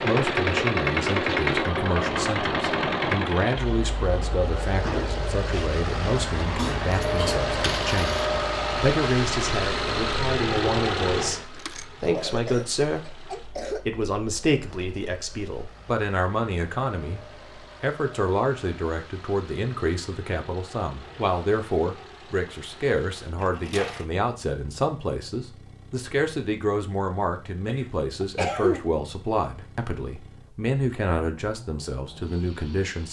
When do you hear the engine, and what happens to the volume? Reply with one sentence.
The engine can be heard from 0.0 to 33.0 s, getting quieter.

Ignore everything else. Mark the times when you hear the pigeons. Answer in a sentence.
You can't hear the pigeons here.